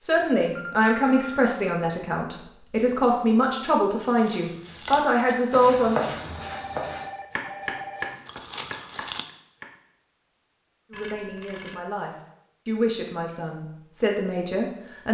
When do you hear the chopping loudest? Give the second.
6 s.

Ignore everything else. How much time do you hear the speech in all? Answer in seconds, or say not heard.
10 s.